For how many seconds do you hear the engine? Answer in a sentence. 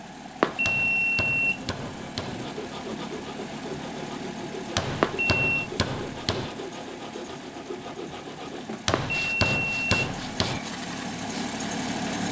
You can hear the engine for 12 seconds altogether.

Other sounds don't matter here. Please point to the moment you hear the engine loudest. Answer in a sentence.
The loudest moment of the engine is at 12 seconds.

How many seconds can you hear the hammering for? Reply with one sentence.
You can hear the hammering for 5 seconds altogether.